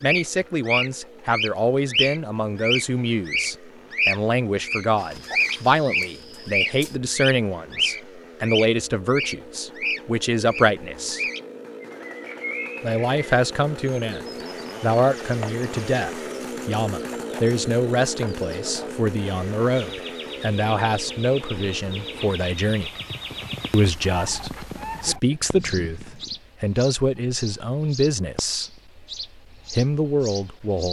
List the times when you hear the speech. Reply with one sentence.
The speech can be heard from 0.0 to 11.2 s, from 12.8 to 22.9 s, from 23.7 to 28.8 s and from 29.7 to 30.8 s.